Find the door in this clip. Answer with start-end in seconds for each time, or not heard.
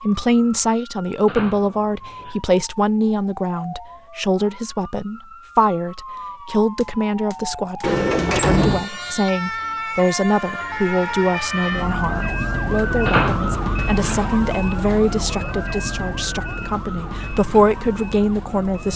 1.2-2.4, 7.8-8.8, 13.1-14.2.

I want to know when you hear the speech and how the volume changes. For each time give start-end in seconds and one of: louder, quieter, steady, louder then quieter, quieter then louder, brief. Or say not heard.
0.0-18.9 steady.